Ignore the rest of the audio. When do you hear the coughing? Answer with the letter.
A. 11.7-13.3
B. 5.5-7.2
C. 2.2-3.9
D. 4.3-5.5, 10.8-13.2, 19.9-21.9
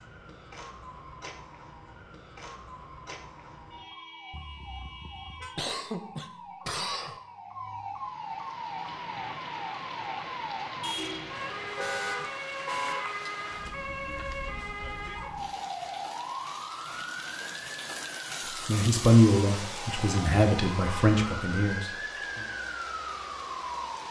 B.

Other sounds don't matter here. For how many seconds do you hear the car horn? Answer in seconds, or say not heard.
6 s.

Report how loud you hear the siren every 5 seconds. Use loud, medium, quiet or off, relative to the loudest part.
medium, loud, loud, loud, loud.